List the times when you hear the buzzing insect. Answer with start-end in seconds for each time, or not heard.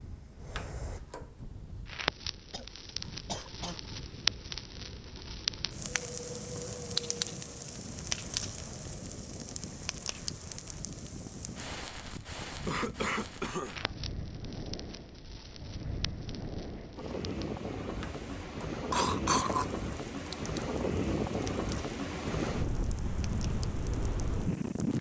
not heard.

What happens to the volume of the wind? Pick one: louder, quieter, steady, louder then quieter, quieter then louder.
louder.